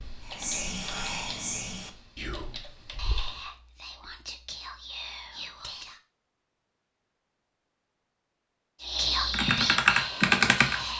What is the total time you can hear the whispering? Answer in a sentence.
The whispering can be heard for 8 seconds in total.